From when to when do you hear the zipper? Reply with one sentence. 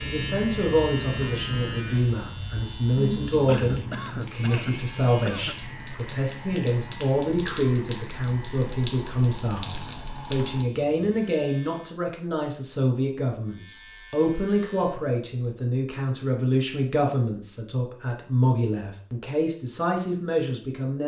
The zipper can't be heard in this clip.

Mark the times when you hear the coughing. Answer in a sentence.
The coughing can be heard from 3.5 to 5.6 s.